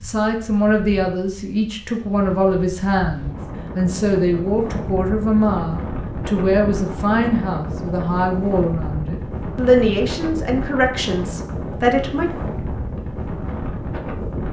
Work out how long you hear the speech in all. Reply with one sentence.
You can hear the speech for 12 seconds altogether.